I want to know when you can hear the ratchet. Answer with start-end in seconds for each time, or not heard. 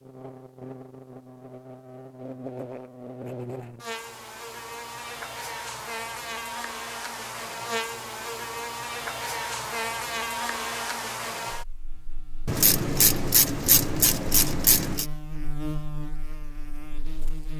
12.4-15.1.